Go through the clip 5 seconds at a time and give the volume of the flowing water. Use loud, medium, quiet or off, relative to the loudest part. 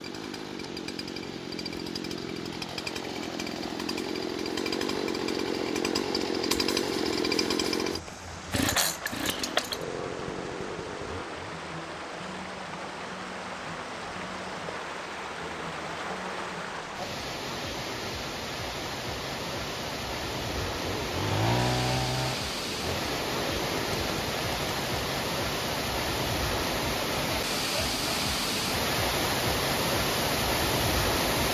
quiet, quiet, medium, medium, medium, loud, loud.